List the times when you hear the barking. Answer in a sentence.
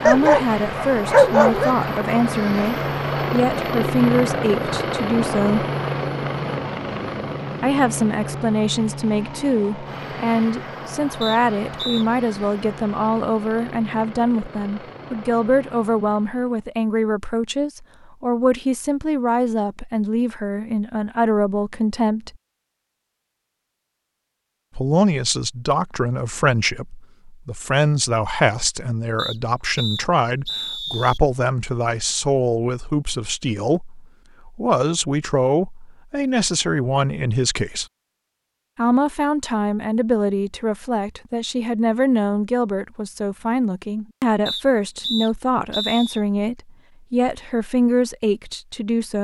You can hear the barking from 0.1 to 1.8 s.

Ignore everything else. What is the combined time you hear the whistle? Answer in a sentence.
You can hear the whistle for 5 seconds altogether.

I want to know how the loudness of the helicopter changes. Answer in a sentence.
The loudness of the helicopter goes down.